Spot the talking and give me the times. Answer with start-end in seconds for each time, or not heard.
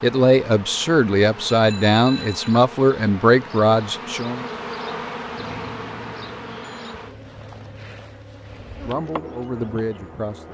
0.0-4.5, 8.8-10.4.